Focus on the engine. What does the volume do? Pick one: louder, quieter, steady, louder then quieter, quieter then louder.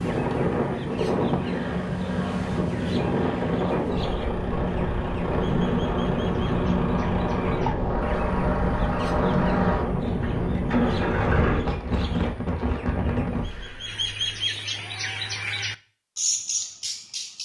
louder.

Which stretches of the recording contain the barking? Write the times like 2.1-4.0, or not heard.
not heard.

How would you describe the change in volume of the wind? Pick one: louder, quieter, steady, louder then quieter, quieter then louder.
steady.